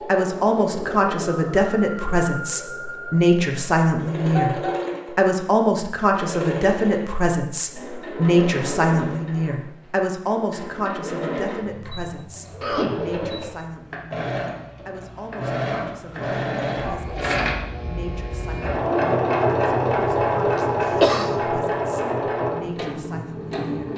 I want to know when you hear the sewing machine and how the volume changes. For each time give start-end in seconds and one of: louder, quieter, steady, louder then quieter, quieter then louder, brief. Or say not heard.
0.0-23.9 louder.